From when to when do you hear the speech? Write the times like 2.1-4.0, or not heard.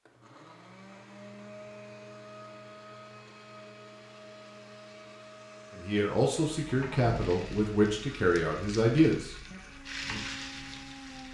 5.7-9.6.